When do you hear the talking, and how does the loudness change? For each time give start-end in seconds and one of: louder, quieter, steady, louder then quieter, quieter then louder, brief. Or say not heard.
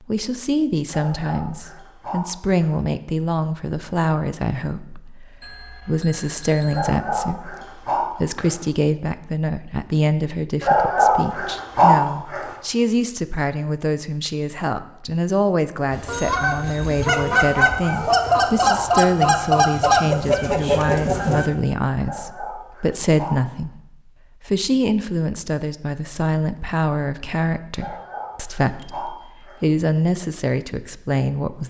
0.0-31.6 steady.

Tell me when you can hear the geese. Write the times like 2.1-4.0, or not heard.
15.9-21.5.